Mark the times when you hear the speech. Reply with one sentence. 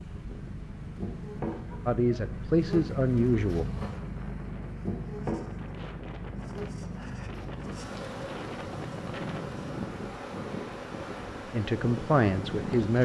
You can hear the speech from 1.9 to 3.6 s and from 11.5 to 13.0 s.